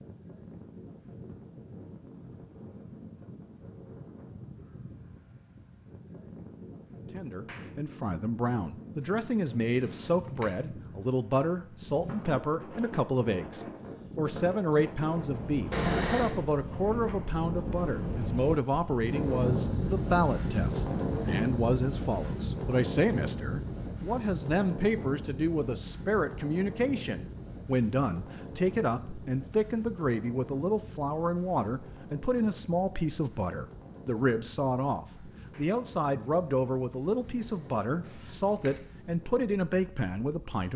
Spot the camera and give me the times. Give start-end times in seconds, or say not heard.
9.8-10.5, 15.7-16.4, 38.0-38.7.